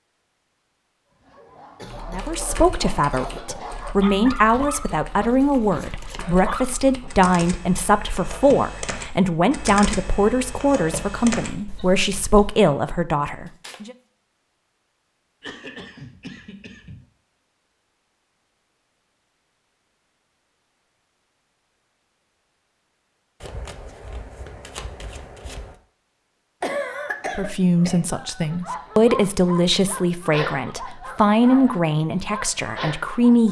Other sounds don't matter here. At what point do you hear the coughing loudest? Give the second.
27 s.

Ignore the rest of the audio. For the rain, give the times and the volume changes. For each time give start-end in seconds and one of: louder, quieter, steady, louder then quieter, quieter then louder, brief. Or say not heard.
not heard.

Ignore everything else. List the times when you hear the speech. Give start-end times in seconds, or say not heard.
2.1-13.9, 27.4-33.4.